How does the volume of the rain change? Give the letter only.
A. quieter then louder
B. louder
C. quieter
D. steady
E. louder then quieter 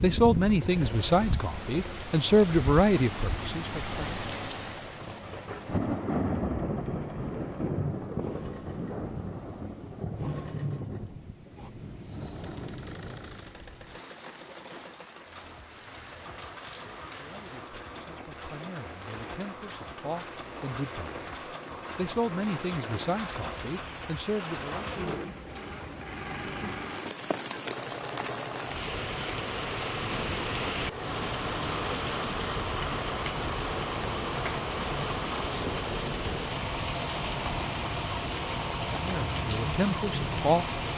A.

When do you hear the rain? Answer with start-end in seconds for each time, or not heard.
0.0-40.9.